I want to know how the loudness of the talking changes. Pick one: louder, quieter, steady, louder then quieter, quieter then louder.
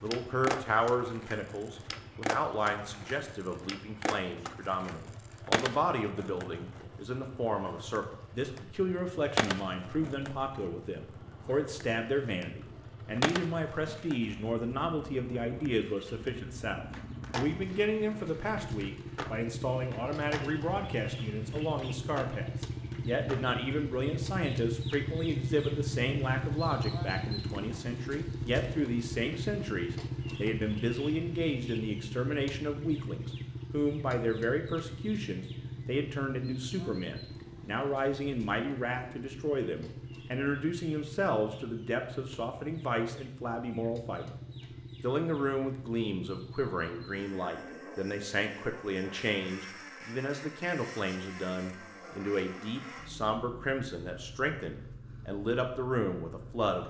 steady.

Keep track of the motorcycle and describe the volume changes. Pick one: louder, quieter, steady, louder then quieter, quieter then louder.
louder then quieter.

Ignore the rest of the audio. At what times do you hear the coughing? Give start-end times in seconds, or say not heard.
not heard.